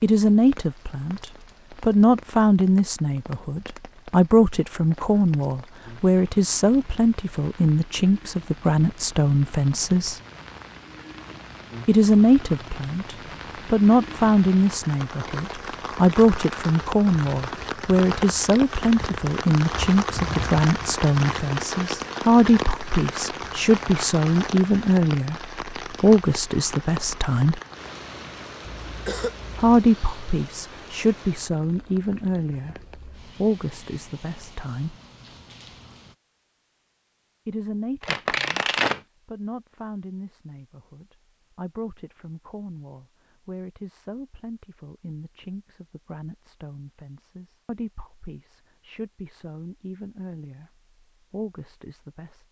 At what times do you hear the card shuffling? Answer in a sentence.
The card shuffling can be heard from 38.0 to 39.0 s.